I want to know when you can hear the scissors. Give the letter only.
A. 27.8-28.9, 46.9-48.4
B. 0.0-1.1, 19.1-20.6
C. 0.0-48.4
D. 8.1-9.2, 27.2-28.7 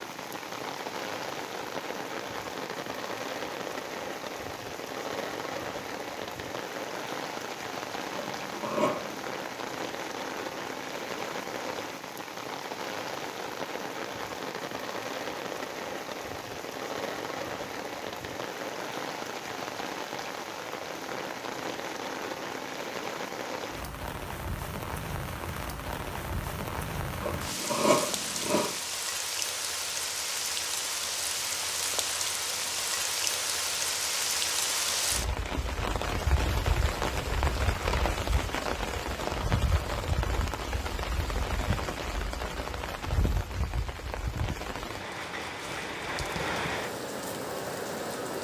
D.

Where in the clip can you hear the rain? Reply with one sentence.
You can hear the rain from 0.0 to 48.4 s.